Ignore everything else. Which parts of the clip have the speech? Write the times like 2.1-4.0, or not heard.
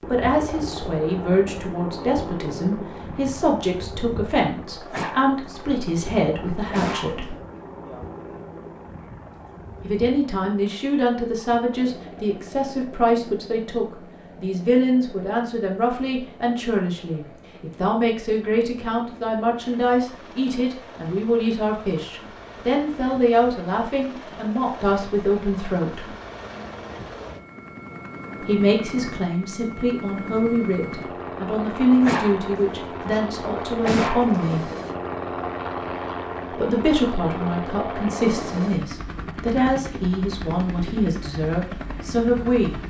0.1-7.3, 9.8-26.1, 28.4-34.6, 36.5-42.8.